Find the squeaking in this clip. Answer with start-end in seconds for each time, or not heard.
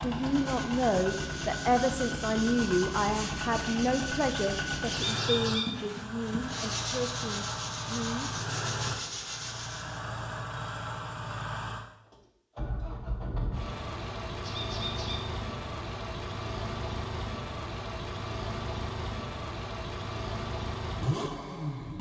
4.9-5.7, 14.4-15.2.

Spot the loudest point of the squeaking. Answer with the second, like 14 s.
5 s.